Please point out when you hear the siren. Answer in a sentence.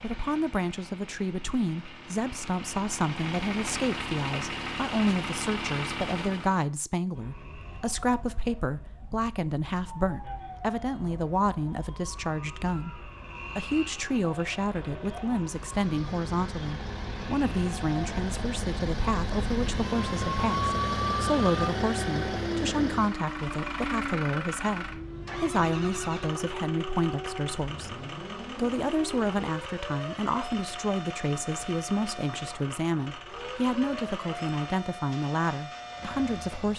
The siren can be heard from 7.1 to 36.7 s.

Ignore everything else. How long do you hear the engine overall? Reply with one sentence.
The engine can be heard for 28 seconds in total.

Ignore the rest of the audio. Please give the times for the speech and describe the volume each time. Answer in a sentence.
The speech can be heard from 0.0 to 36.7 s, at a steady volume.